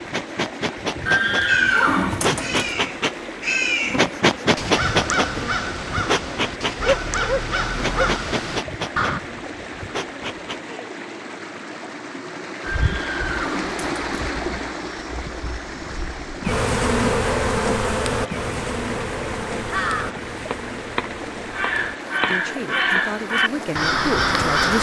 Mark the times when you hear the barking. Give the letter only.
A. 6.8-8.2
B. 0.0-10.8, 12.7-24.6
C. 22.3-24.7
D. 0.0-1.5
A.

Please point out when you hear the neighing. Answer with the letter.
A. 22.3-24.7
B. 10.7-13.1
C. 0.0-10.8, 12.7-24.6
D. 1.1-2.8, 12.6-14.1
D.